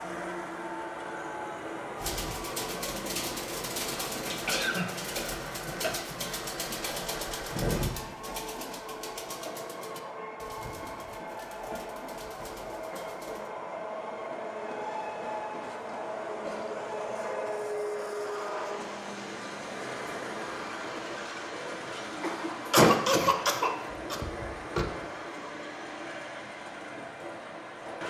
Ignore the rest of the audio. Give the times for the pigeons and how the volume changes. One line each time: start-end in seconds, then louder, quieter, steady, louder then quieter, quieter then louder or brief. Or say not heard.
1.9-13.5 quieter.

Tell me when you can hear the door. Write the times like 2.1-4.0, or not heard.
24.0-24.9.